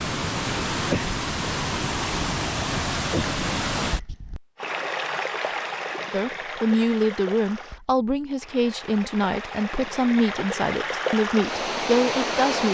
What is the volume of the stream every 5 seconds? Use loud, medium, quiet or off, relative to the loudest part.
loud, medium, loud.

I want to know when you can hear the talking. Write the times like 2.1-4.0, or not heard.
6.1-12.7.